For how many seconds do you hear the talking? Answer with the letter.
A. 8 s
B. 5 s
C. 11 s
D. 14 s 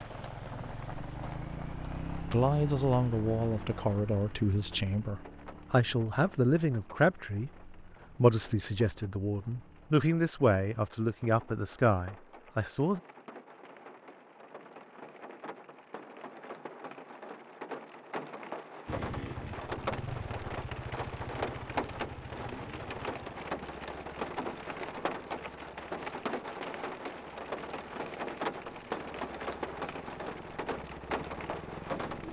C.